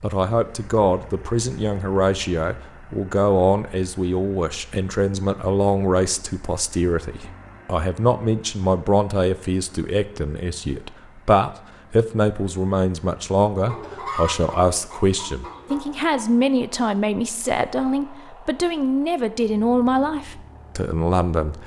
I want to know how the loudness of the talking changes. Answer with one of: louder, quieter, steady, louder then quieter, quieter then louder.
steady.